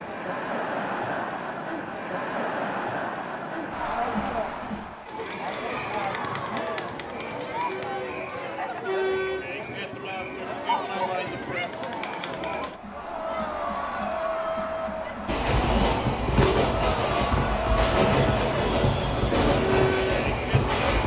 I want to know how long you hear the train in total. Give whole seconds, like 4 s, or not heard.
6 s.